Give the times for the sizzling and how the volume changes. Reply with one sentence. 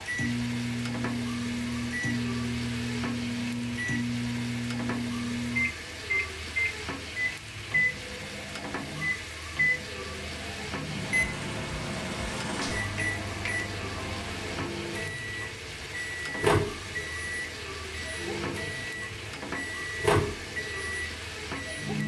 The sizzling can be heard from 0.0 to 22.0 s, at a steady volume.